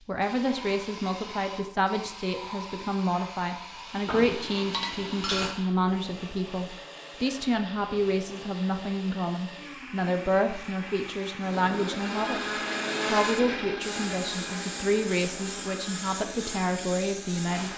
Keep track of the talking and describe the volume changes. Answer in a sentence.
The loudness of the talking stays about the same.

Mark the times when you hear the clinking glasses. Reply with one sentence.
You can hear the clinking glasses from 4.0 to 5.5 s.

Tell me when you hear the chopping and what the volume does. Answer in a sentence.
You can't hear the chopping here.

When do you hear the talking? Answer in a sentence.
You can hear the talking from 0.1 to 12.4 s and from 13.1 to 17.7 s.